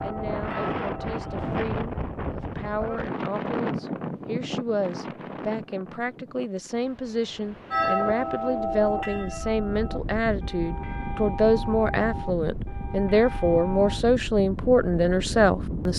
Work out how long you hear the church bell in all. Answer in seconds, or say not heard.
8 s.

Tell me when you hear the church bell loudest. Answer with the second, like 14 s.
8 s.